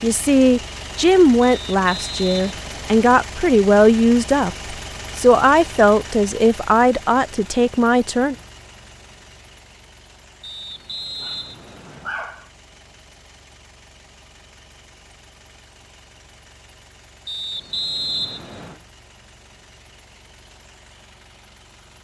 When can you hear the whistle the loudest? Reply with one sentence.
The loudest moment of the whistle is at 18 seconds.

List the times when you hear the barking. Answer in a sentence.
You can hear the barking from 11.2 to 12.5 s.